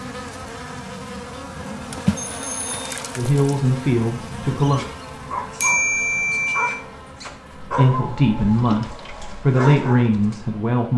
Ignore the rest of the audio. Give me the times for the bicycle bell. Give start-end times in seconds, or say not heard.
2.1-2.8, 5.6-6.8.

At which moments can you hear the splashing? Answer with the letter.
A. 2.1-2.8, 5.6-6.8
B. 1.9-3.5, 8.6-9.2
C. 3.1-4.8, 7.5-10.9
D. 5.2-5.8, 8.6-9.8
B.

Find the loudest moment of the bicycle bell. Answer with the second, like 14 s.
6 s.